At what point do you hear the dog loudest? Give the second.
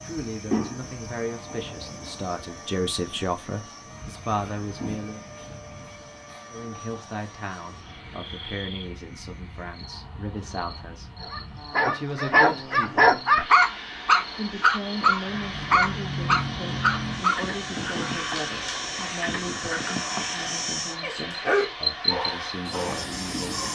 13 s.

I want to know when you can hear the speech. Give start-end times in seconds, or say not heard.
0.0-5.2, 6.5-13.1, 14.3-23.6.